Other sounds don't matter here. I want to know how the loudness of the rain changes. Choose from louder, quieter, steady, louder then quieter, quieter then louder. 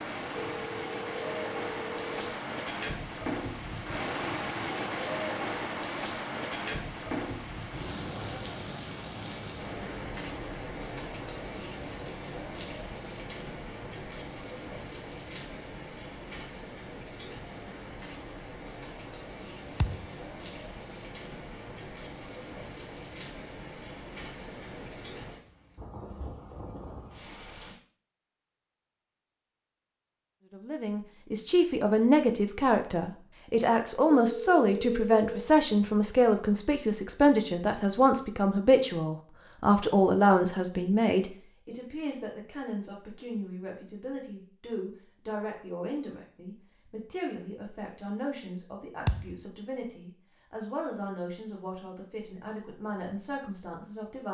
quieter.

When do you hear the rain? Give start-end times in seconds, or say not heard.
0.0-27.8.